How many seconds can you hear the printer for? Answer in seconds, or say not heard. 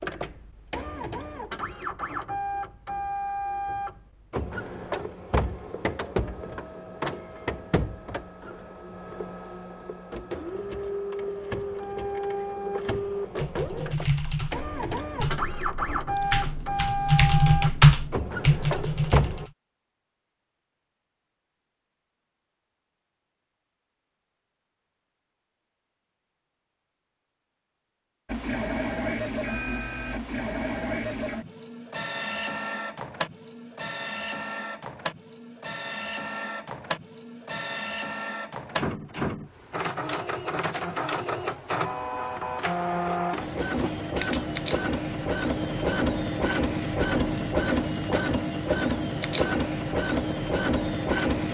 43 s.